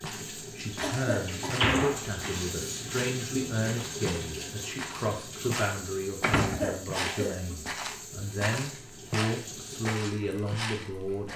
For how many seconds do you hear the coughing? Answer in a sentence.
You can hear the coughing for 2 seconds altogether.